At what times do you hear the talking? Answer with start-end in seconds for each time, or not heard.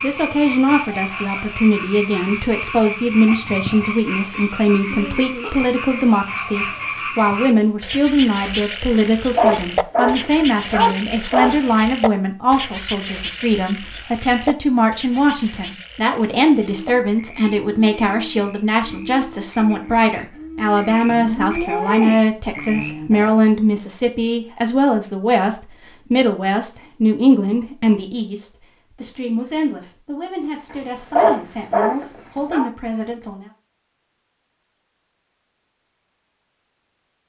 0.0-33.5.